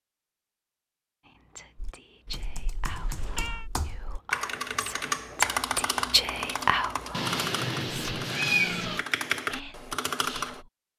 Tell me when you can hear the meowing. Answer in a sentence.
The meowing can be heard from 2.8 to 3.7 s and from 7.1 to 9.1 s.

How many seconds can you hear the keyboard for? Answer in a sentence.
The keyboard can be heard for 9 seconds in total.